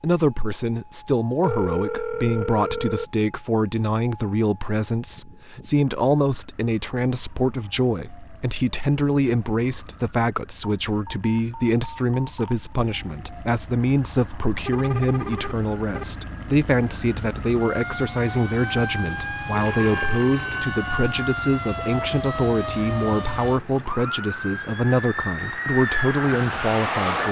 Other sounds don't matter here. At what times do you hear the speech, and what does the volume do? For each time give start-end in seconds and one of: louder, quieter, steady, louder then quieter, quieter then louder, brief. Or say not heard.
0.0-27.2 steady.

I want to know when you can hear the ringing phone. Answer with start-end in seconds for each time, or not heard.
1.4-3.0, 14.6-16.1, 19.5-21.2.